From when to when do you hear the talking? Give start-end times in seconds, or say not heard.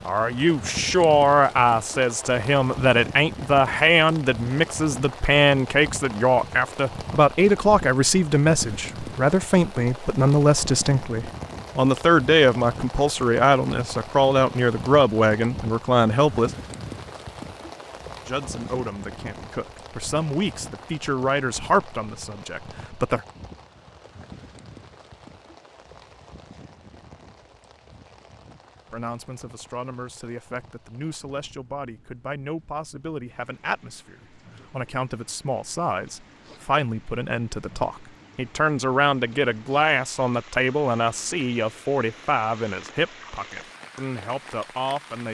0.1-16.5, 18.2-23.2, 28.9-45.3.